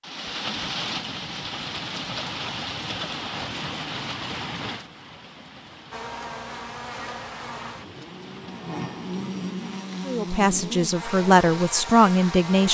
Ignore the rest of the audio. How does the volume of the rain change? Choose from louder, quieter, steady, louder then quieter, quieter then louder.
quieter.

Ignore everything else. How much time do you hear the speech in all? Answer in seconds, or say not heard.
3 s.